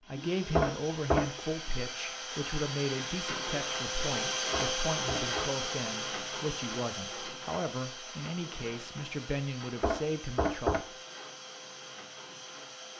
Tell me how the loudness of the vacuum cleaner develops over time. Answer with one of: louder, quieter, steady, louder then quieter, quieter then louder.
louder then quieter.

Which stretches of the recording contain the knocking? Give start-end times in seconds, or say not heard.
0.6-1.4, 4.5-5.5, 9.8-10.8.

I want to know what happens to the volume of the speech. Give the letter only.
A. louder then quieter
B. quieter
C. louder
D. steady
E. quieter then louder
D.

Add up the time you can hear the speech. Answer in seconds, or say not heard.
11 s.